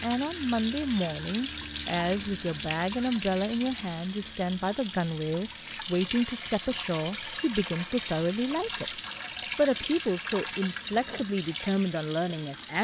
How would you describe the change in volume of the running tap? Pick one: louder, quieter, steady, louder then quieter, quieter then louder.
steady.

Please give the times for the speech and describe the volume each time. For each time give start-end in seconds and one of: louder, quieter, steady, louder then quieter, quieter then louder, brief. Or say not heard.
0.0-12.7 steady.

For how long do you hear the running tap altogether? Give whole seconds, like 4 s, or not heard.
13 s.